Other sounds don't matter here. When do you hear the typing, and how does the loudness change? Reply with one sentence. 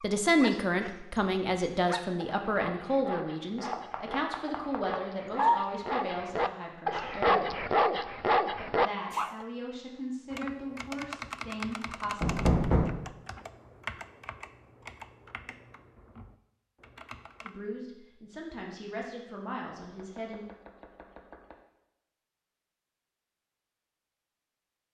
The typing can be heard from 10.3 to 17.5 s, getting quieter.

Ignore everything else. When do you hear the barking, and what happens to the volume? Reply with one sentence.
You can hear the barking from 0.0 to 9.4 s, getting louder.